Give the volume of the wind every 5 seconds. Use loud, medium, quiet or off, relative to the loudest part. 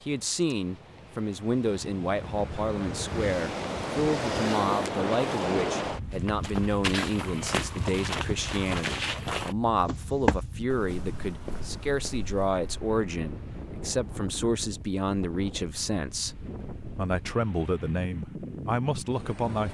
loud, loud, medium, medium.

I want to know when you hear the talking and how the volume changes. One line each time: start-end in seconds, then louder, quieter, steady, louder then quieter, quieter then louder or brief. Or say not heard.
0.0-19.6 steady.